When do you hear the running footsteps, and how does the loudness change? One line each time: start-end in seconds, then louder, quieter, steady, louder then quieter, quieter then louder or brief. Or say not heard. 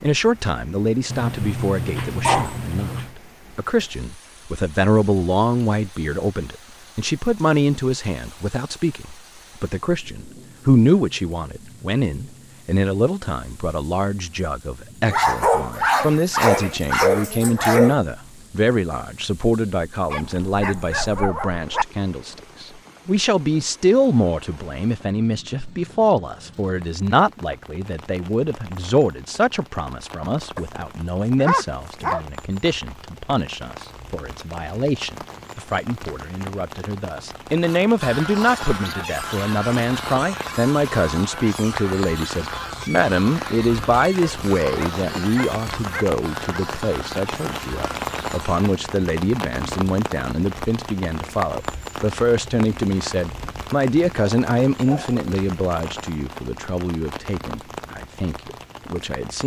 not heard.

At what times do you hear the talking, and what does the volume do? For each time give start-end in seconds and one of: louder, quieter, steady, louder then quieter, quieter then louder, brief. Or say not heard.
0.0-59.4 steady.